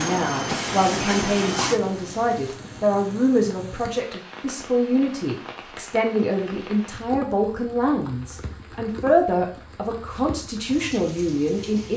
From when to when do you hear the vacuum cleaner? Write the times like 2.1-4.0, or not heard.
0.0-2.6.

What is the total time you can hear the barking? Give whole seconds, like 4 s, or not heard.
not heard.